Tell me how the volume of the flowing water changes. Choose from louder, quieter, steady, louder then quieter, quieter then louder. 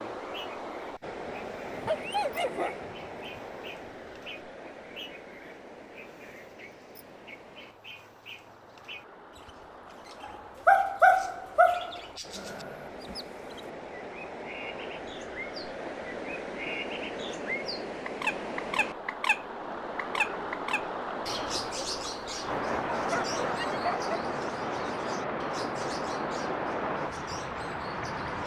quieter then louder.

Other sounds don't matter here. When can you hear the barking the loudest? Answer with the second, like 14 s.
11 s.